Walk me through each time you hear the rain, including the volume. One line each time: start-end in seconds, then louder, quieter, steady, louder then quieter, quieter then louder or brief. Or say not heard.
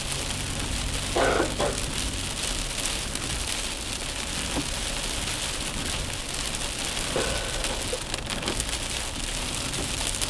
0.0-10.2 steady.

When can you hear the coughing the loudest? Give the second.
1 s.